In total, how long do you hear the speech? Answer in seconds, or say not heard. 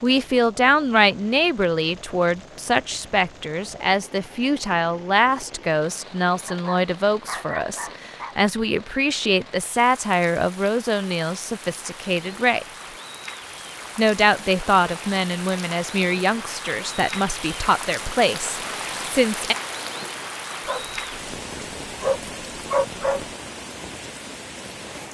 18 s.